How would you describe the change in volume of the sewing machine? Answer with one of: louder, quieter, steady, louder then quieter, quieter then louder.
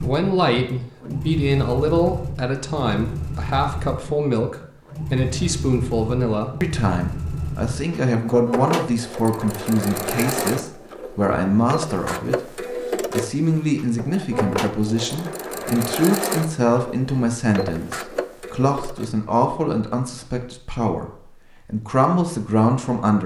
steady.